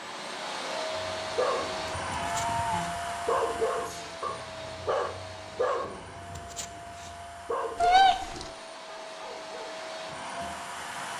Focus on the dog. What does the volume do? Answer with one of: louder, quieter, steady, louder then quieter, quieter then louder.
quieter.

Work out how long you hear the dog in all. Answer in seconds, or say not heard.
9 s.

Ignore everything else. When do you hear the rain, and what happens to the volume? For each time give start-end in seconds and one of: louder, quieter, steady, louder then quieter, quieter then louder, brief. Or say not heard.
not heard.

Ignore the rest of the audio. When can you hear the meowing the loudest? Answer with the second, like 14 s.
8 s.